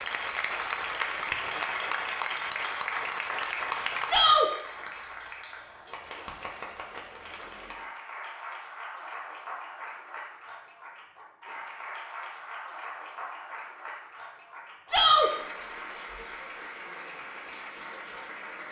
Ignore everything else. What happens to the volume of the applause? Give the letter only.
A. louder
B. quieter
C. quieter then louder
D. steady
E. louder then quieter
B.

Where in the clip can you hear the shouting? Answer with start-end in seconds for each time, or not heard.
4.0-4.5, 14.8-15.3.